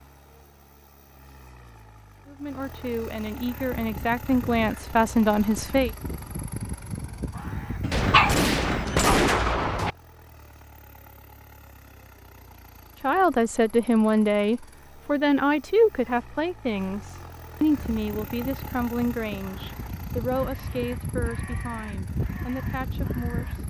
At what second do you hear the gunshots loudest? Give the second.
9 s.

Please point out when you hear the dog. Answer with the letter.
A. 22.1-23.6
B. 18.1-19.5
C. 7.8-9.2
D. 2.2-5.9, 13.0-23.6
C.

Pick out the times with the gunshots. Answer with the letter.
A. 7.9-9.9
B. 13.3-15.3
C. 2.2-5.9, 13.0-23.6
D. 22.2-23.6
A.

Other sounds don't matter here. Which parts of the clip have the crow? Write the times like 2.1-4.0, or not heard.
3.5-8.4, 17.7-23.6.